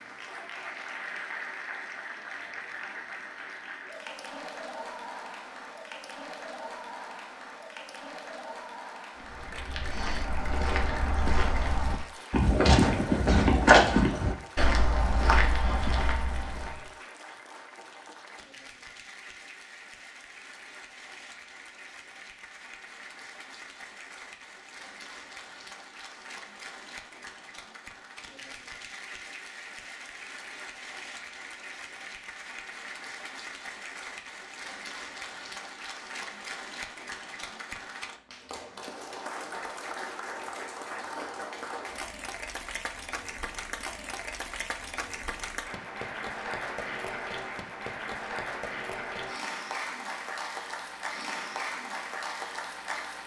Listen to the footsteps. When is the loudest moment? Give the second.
14 s.